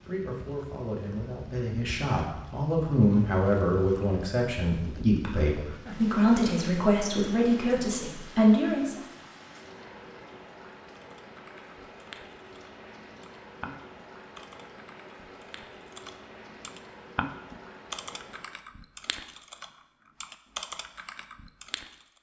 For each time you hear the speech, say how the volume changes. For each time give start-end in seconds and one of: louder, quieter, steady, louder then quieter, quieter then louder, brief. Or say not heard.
0.0-9.0 louder.